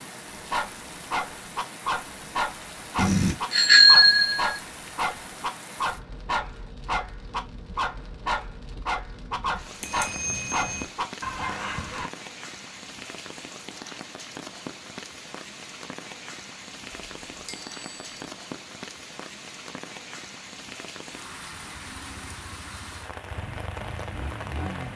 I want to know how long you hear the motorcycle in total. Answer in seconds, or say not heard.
3 s.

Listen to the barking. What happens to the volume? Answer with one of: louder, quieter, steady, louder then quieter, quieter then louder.
steady.